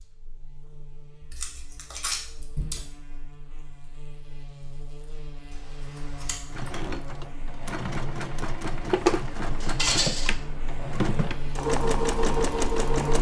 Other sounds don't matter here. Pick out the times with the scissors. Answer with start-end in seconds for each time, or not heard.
1.2-2.9, 5.5-6.8, 9.6-10.3.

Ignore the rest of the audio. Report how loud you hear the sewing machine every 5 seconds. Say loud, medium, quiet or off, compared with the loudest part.
off, loud, loud.